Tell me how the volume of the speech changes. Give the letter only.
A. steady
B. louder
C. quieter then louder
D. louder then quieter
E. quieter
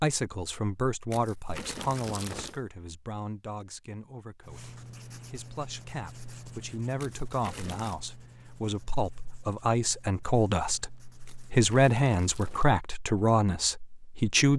C.